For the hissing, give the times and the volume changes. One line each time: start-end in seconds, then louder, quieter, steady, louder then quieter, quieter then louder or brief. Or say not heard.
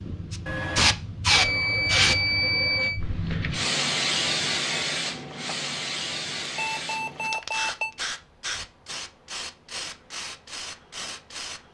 0.0-11.6 quieter.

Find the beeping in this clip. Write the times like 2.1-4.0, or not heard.
0.5-3.0, 6.4-7.9.